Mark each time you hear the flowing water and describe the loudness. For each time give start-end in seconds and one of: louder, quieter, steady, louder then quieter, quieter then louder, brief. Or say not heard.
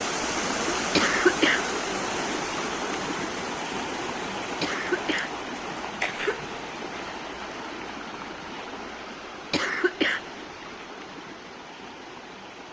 0.0-12.6 quieter.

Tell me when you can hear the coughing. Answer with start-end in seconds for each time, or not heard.
0.9-1.6, 4.6-6.5, 9.5-10.2.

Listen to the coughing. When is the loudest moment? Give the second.
1 s.